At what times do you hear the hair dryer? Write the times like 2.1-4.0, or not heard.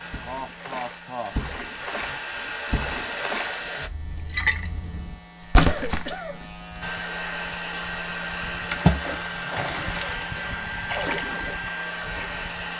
0.0-3.9, 6.8-12.7.